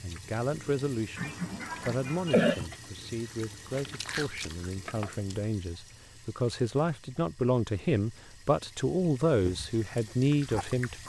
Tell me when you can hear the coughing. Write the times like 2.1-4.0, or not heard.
1.1-2.6.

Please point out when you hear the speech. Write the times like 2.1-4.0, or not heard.
0.0-11.0.